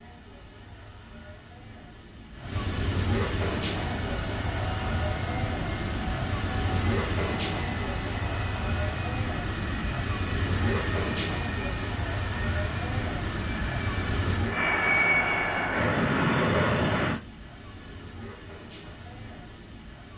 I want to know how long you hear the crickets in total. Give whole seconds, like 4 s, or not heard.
20 s.